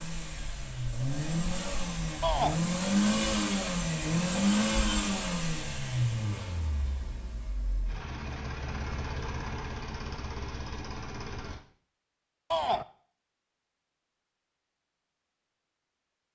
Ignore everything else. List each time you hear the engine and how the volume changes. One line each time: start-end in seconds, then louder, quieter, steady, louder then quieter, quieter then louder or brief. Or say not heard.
0.0-11.6 louder then quieter.